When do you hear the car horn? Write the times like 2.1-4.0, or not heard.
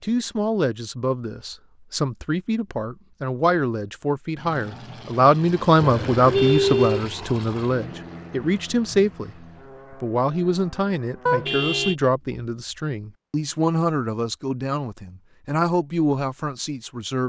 5.8-7.1, 11.2-11.9.